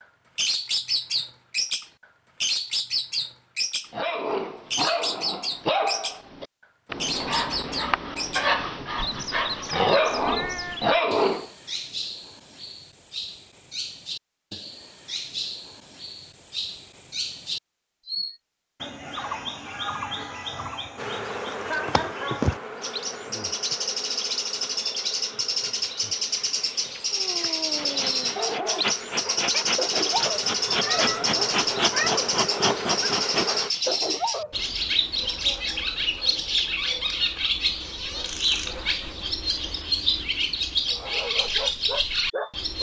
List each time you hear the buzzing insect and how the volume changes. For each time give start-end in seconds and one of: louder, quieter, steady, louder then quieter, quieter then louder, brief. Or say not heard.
20.9-33.7 quieter then louder.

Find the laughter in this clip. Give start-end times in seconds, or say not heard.
21.6-22.5.